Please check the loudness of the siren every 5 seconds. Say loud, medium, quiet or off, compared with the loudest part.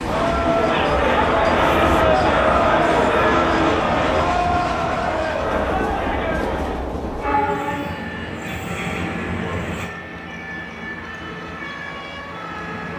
off, loud, loud.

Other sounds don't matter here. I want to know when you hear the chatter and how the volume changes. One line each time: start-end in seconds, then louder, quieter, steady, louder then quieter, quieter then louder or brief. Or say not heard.
0.0-7.0 quieter.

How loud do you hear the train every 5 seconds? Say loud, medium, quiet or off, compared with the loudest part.
loud, loud, medium.